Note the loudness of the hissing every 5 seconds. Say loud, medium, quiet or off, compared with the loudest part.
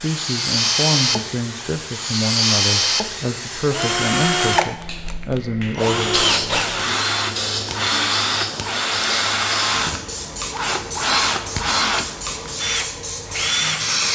medium, loud, loud.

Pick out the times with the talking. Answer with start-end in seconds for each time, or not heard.
0.0-6.2.